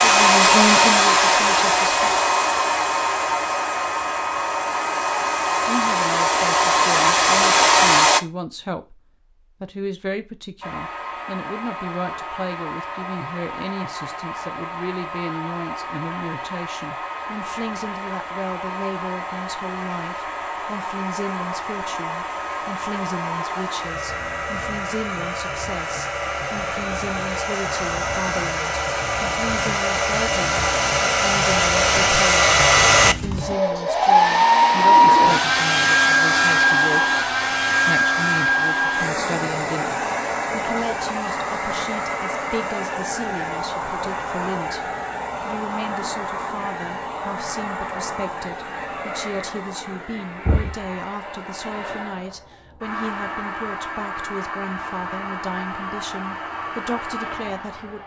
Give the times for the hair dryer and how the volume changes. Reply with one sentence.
You can hear the hair dryer from 0.0 to 8.2 s, getting quieter then louder; and from 10.6 to 58.0 s, getting louder then quieter.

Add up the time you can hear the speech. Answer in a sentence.
You can hear the speech for 54 seconds altogether.